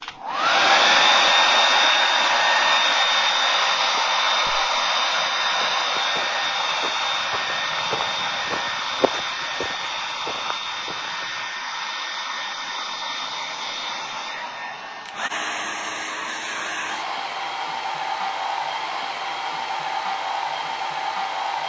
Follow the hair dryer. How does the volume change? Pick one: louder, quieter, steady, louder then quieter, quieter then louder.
quieter.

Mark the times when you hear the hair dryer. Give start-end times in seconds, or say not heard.
0.0-21.6.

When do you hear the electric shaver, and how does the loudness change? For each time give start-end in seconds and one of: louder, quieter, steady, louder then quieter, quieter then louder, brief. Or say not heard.
not heard.